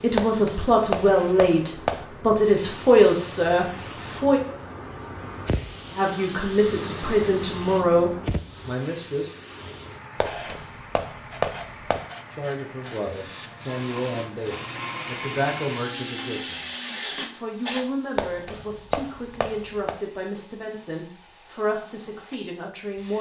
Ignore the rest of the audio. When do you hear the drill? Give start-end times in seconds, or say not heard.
12.9-17.9.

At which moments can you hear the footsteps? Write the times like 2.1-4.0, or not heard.
not heard.